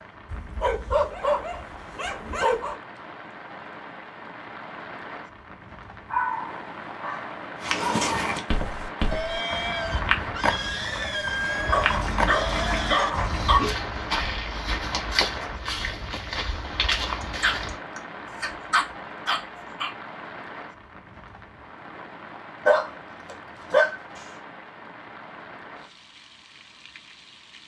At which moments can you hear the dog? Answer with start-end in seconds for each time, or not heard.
0.3-2.8, 6.1-8.3, 11.7-13.7, 17.4-19.9, 22.6-23.9.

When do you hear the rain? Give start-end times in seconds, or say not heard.
0.0-27.6.